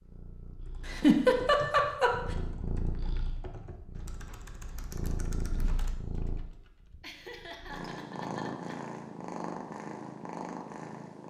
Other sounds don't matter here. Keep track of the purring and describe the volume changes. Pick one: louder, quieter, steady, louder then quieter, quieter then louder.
louder.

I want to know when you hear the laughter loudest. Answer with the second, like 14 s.
1 s.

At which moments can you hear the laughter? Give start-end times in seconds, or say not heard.
0.8-2.1, 7.0-8.8.